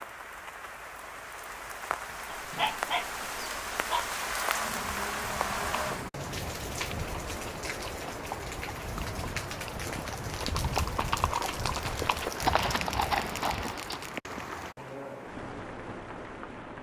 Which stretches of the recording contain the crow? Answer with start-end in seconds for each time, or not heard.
not heard.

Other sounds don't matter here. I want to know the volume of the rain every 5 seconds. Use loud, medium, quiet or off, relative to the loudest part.
loud, loud, loud, medium.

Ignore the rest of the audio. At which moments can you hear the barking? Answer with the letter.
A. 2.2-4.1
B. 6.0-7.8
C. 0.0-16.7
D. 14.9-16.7
A.